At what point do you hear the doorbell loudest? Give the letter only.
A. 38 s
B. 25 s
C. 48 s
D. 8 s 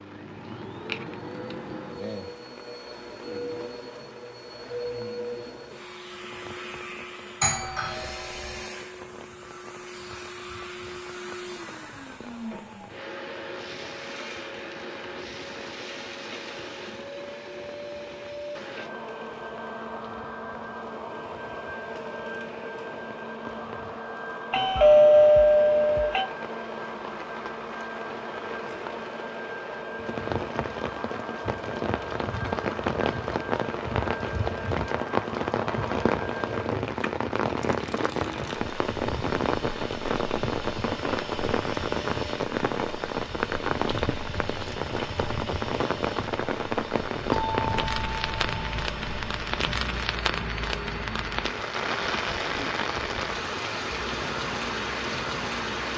B.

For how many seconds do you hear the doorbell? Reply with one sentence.
The doorbell can be heard for 5 seconds in total.